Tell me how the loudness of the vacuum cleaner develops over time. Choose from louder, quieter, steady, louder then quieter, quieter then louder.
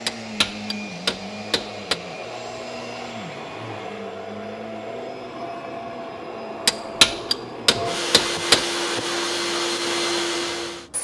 louder.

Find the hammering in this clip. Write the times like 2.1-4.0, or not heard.
0.1-2.0, 6.7-8.7.